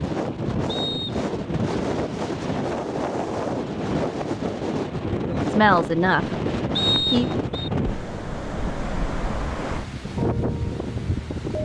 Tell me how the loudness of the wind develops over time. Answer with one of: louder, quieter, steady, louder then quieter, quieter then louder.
steady.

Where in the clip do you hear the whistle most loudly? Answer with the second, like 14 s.
7 s.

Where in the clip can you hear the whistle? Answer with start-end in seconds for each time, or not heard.
0.7-1.2, 6.8-7.7.